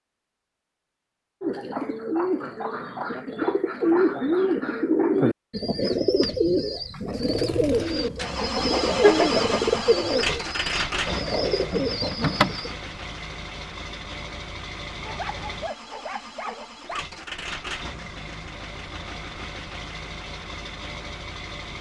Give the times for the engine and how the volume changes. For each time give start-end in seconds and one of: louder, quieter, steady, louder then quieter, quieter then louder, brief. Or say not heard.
7.1-21.7 quieter.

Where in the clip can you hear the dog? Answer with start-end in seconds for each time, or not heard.
15.0-17.1.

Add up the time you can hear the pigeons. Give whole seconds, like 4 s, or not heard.
11 s.